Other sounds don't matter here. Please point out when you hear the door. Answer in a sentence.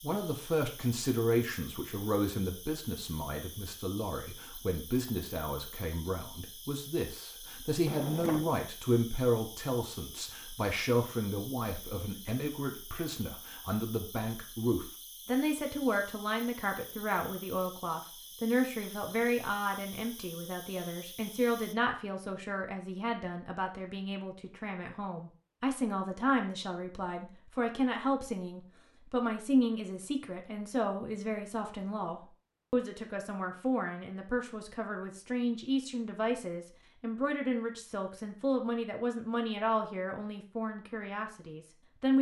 You can hear the door from 7.8 to 8.7 s.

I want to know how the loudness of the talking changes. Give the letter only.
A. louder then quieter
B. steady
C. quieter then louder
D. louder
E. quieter
B.